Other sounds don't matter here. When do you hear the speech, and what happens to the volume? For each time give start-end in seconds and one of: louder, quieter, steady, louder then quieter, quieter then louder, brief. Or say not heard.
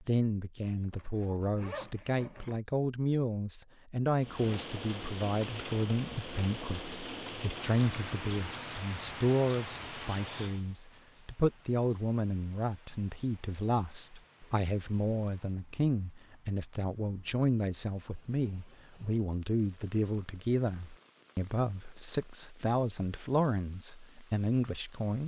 0.0-25.2 steady.